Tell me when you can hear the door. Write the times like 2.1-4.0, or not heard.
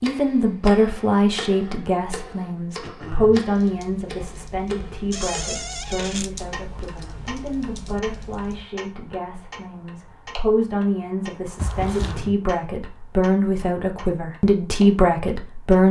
5.1-6.3, 11.6-12.3.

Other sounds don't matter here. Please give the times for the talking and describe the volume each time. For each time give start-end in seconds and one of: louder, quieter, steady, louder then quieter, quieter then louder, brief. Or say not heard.
0.0-15.8 quieter then louder.